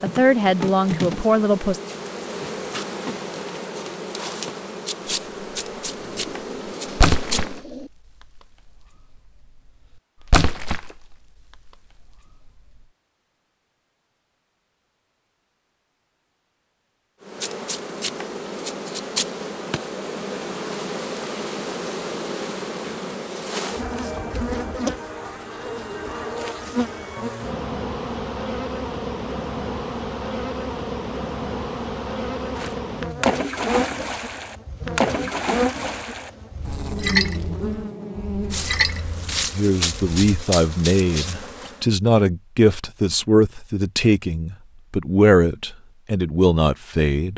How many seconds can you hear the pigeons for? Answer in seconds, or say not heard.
2 s.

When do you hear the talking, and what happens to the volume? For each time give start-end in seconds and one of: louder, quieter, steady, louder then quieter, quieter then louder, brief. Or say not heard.
0.0-1.8 brief
39.5-47.3 steady.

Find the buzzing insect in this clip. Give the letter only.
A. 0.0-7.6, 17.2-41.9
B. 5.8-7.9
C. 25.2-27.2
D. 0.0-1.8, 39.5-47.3
A.